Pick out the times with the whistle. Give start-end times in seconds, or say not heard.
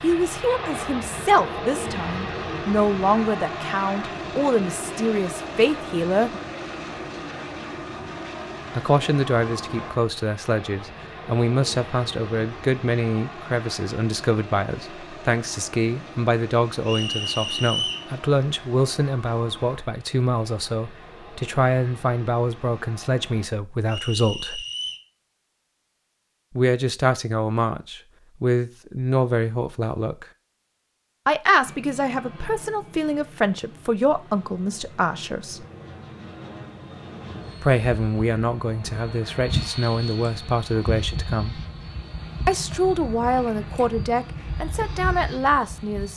16.9-18.1, 23.9-25.0.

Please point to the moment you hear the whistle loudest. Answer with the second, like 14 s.
18 s.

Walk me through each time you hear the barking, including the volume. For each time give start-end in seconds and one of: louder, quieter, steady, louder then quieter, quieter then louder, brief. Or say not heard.
not heard.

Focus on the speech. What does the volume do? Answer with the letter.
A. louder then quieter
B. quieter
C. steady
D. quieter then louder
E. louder
C.